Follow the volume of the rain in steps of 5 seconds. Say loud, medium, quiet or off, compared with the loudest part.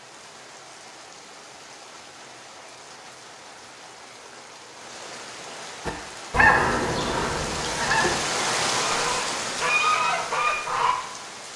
quiet, loud, medium.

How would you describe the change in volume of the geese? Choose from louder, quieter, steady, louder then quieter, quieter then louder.
quieter then louder.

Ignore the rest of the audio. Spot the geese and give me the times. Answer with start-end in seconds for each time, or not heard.
5.8-10.9.